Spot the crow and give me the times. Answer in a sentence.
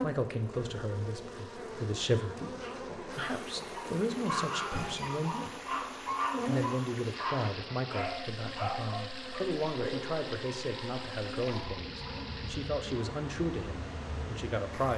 You can't hear the crow here.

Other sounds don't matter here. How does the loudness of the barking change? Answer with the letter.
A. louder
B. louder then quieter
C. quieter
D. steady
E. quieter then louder
C.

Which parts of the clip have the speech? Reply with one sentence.
You can hear the speech from 0.0 to 5.7 s and from 6.5 to 14.9 s.